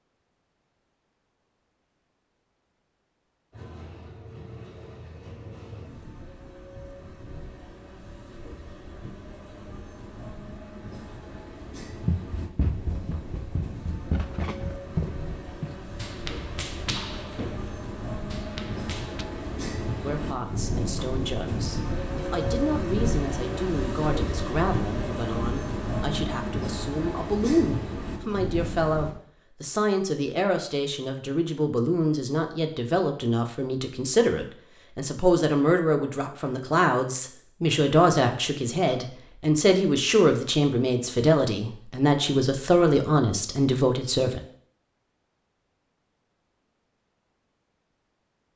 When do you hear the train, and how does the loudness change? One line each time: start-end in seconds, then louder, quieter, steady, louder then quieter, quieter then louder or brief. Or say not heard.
3.5-29.1 louder.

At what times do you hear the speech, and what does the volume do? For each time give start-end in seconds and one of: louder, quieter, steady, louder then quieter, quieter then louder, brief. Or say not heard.
20.0-44.4 louder.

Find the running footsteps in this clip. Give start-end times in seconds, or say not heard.
12.1-19.2.